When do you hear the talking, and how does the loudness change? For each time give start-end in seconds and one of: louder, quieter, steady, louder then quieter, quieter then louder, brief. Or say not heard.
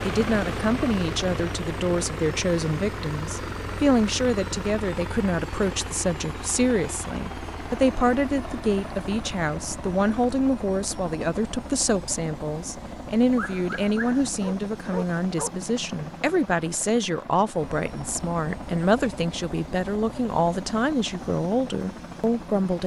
0.0-22.8 steady.